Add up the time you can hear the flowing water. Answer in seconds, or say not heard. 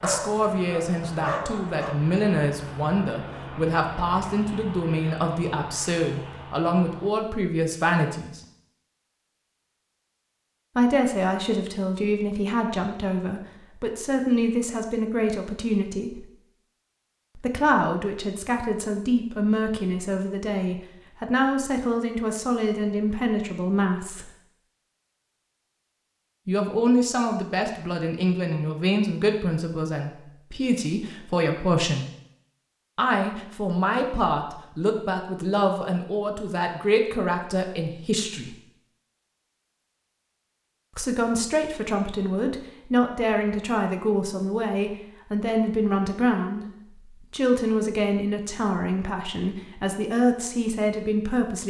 not heard.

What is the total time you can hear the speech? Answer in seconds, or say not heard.
43 s.